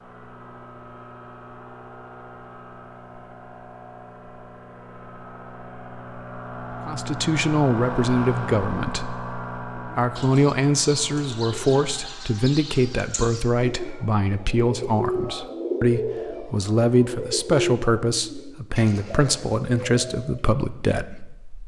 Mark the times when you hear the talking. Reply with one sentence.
You can hear the talking from 6.8 to 21.6 s.